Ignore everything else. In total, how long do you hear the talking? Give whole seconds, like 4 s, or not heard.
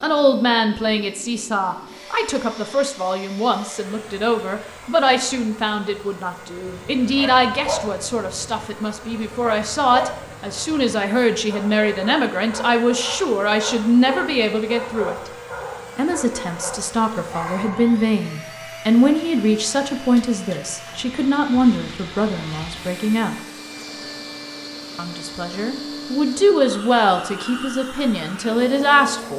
27 s.